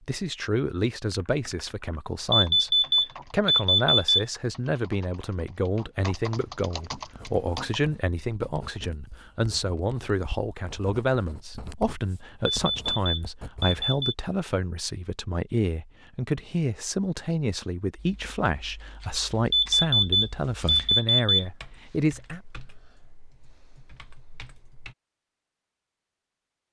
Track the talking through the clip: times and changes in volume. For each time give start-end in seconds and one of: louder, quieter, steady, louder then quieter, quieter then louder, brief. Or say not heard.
0.1-22.4 steady.